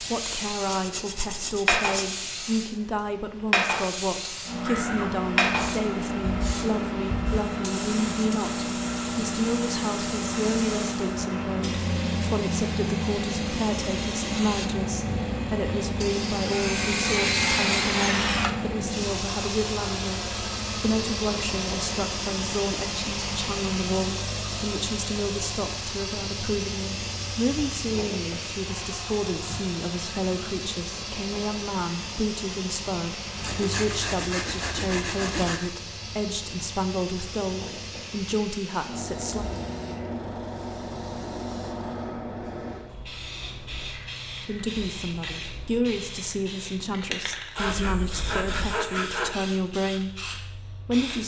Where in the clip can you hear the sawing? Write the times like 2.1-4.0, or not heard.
0.7-2.2, 16.5-18.6, 33.4-35.7, 47.5-49.4.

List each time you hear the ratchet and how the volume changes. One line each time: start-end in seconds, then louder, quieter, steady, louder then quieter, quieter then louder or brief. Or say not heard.
not heard.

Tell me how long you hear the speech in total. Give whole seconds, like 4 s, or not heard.
46 s.